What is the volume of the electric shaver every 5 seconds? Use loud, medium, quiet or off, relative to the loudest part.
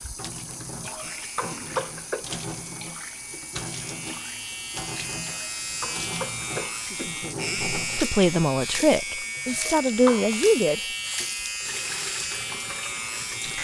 medium, loud, loud.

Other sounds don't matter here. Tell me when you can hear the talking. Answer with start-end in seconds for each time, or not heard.
6.8-10.8.